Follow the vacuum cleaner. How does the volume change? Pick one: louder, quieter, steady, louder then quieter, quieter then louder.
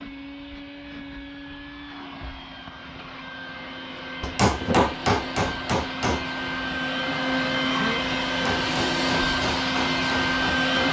louder.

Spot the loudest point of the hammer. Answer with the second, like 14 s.
5 s.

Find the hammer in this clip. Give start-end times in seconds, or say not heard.
4.2-6.2, 8.4-10.8.